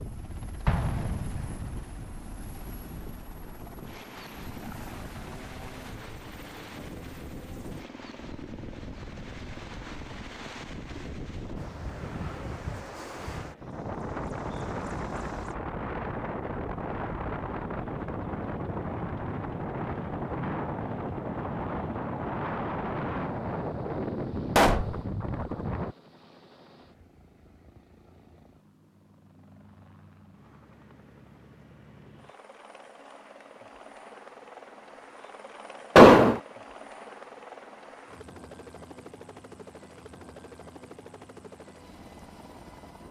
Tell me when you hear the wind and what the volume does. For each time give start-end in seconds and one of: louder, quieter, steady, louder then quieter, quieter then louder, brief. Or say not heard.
0.0-25.9 louder.